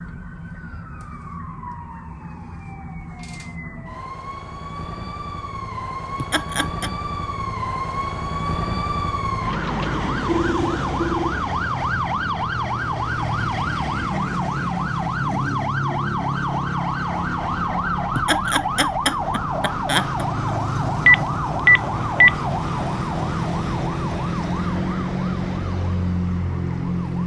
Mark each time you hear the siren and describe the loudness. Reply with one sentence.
The siren can be heard from 0.0 to 27.2 s, getting louder.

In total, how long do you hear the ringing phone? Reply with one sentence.
You can hear the ringing phone for 3 seconds altogether.